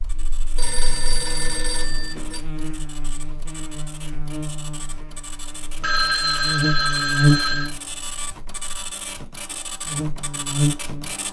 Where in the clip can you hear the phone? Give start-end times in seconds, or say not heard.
0.6-2.4, 5.8-7.7.